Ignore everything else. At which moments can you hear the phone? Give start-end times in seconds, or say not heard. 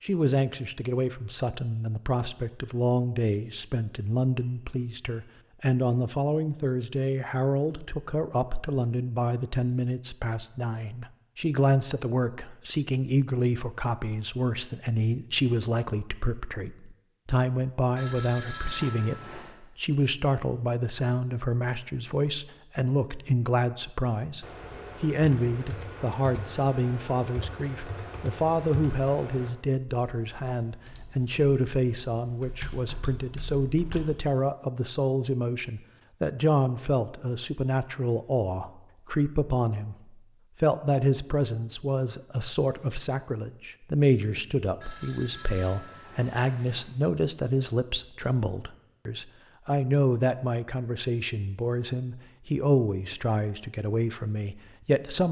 17.9-19.6, 44.8-46.8.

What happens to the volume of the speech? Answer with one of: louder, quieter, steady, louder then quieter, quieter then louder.
steady.